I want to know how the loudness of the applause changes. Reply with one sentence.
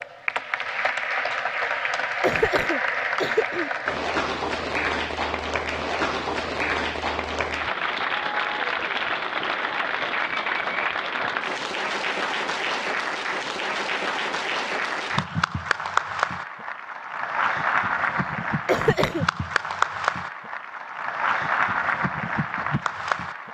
The volume of the applause stays about the same.